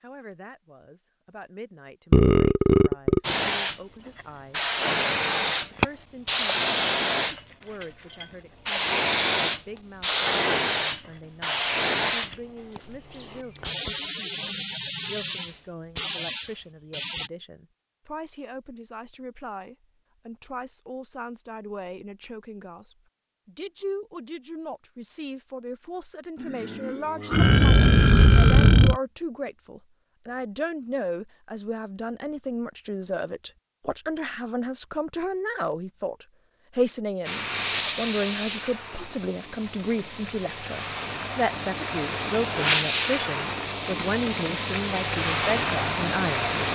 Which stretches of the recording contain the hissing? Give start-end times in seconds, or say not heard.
3.2-17.3, 37.2-46.7.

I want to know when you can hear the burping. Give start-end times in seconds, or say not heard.
2.1-3.4, 26.4-29.0.